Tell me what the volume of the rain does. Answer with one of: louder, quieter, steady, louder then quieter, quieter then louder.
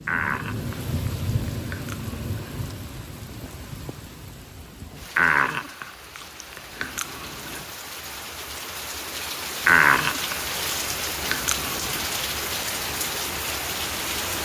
quieter then louder.